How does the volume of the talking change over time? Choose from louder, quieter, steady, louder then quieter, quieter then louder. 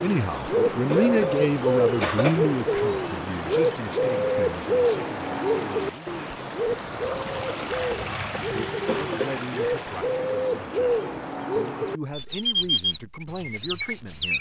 quieter.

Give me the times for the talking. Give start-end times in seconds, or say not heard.
0.0-6.1, 8.9-14.3.